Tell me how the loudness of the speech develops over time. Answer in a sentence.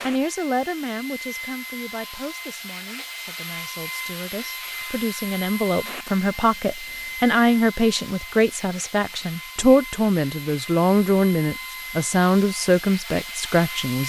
The loudness of the speech goes up.